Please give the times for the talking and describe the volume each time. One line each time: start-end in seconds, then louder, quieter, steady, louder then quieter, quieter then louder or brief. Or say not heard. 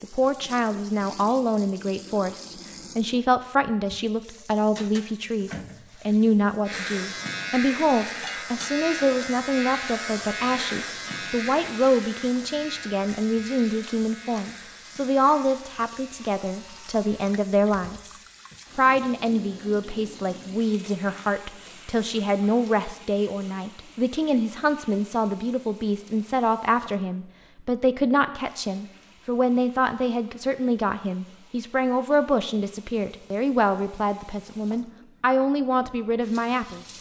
0.0-36.9 steady.